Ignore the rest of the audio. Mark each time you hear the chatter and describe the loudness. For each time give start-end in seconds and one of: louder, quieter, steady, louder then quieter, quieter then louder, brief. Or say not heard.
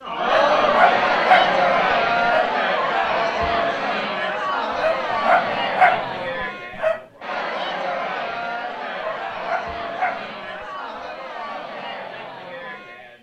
0.0-13.1 quieter.